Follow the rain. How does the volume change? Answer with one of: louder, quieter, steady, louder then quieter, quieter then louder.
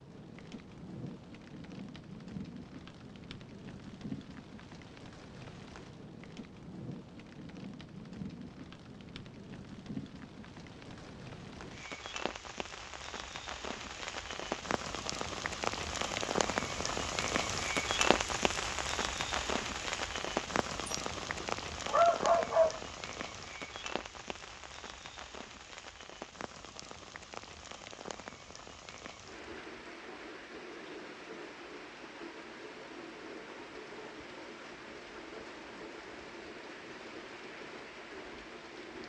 louder then quieter.